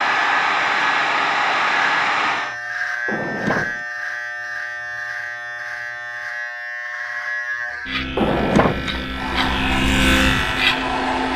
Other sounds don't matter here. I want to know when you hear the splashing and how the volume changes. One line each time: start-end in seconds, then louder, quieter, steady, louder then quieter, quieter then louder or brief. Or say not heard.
not heard.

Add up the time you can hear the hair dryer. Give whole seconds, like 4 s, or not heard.
5 s.